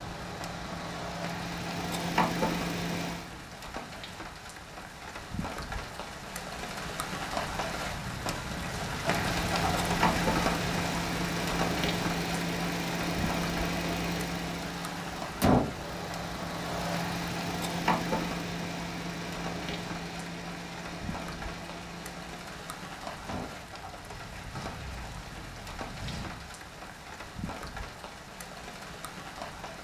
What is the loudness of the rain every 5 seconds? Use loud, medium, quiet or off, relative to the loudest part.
medium, loud, loud, medium, medium, medium.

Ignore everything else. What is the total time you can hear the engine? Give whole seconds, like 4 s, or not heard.
21 s.